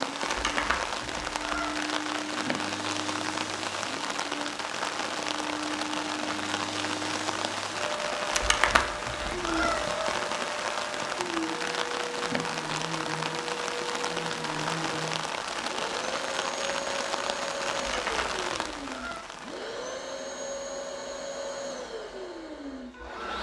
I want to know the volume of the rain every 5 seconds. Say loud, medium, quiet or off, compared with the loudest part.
loud, loud, loud, loud, off.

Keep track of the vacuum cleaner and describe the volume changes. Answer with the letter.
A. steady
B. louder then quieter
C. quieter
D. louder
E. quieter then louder
A.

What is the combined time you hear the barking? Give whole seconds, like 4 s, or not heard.
not heard.